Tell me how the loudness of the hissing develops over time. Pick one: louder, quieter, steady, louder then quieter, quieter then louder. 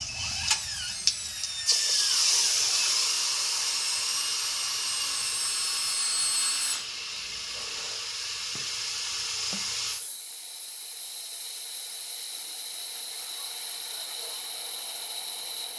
quieter.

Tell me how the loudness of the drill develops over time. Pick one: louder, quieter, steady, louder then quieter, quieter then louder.
steady.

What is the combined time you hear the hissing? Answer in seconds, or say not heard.
16 s.